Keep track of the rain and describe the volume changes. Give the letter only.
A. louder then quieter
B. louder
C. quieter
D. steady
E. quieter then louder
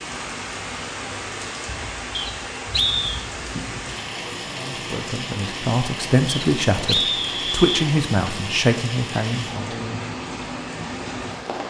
D.